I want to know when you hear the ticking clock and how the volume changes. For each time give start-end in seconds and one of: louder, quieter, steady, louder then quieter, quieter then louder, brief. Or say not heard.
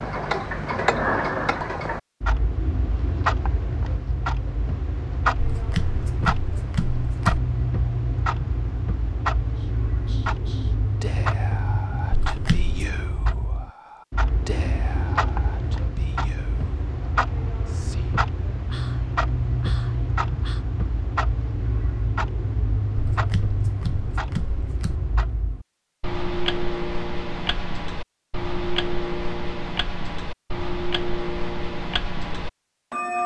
0.0-33.2 steady.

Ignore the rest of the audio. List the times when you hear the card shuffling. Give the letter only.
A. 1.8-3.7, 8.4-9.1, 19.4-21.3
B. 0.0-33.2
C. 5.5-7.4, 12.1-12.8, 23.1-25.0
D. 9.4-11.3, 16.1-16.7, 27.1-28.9
C.